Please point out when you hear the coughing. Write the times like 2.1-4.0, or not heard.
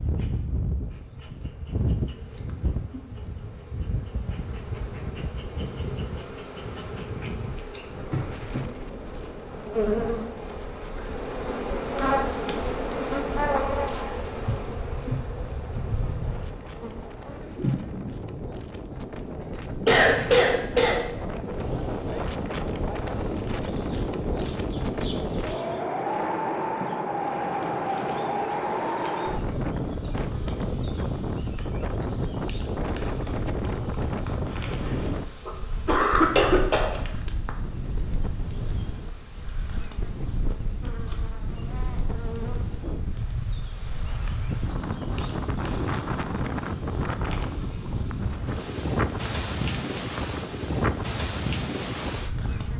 19.2-21.1, 34.2-37.0.